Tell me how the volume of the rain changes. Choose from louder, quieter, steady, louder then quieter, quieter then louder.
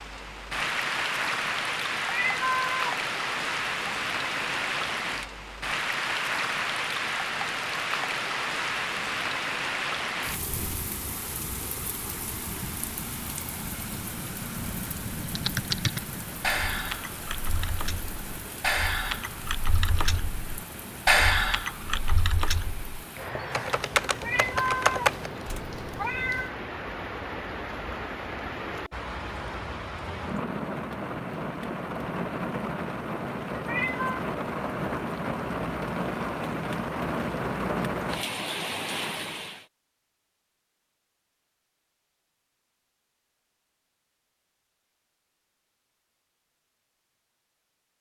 quieter then louder.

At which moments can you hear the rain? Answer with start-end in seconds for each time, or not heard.
0.0-39.6.